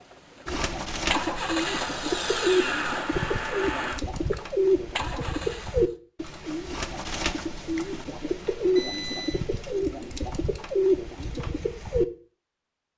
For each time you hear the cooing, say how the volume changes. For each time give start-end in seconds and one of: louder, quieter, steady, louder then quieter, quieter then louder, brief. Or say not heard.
0.5-12.1 steady.